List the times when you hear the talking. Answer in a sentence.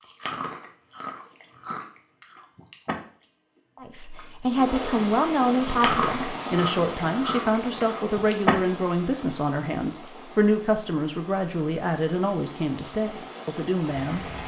You can hear the talking from 3.8 to 14.2 s.